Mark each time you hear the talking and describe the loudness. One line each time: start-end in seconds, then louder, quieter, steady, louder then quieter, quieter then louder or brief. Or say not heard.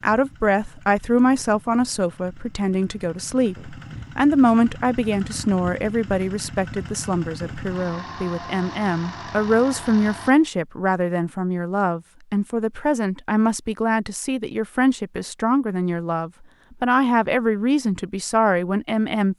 0.0-19.3 steady.